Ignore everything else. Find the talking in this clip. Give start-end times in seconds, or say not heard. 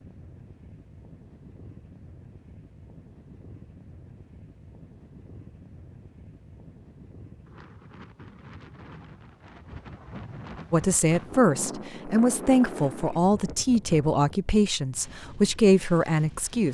10.7-16.6.